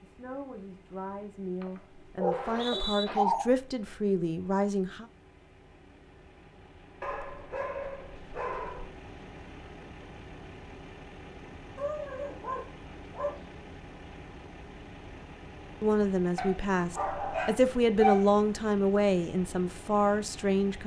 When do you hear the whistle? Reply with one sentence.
You can hear the whistle from 2.3 to 3.0 s.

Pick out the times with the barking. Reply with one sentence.
The barking can be heard from 1.6 to 3.5 s, from 7.0 to 8.9 s, from 11.8 to 13.7 s and from 16.4 to 18.3 s.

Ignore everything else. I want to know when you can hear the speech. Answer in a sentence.
You can hear the speech from 0.0 to 5.0 s and from 15.8 to 20.8 s.